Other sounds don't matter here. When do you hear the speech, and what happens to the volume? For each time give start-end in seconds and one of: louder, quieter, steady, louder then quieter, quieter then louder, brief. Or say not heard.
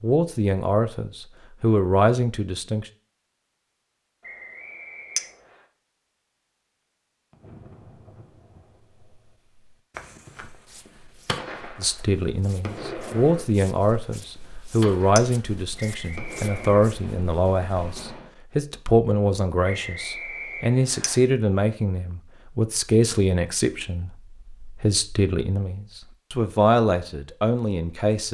0.0-2.9 brief
11.8-28.2 steady.